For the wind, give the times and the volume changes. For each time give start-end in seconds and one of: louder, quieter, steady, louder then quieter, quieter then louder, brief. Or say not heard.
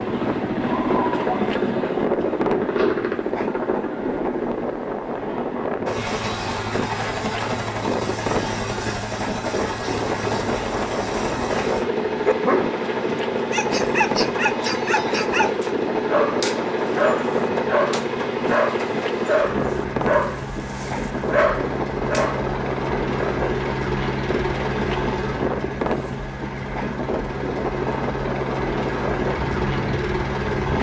0.0-30.7 steady.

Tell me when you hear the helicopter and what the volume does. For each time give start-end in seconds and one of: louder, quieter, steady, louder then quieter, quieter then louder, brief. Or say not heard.
0.0-30.7 steady.